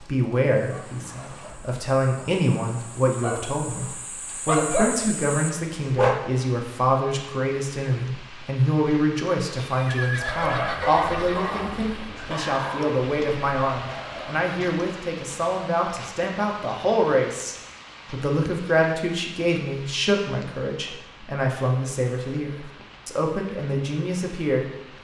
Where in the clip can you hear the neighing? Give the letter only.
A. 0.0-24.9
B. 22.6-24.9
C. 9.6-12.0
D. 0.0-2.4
C.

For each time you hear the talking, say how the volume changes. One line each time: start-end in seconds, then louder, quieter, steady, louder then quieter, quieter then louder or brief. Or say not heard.
0.0-24.9 steady.